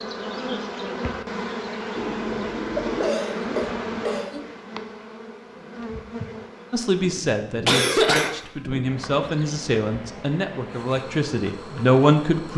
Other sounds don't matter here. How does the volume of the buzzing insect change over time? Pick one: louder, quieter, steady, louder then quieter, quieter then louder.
quieter.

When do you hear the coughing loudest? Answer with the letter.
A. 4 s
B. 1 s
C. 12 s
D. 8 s
D.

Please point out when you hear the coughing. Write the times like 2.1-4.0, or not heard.
1.9-4.4, 7.7-8.3.